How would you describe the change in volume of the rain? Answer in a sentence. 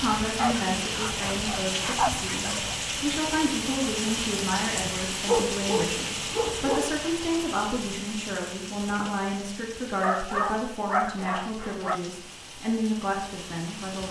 The loudness of the rain goes down.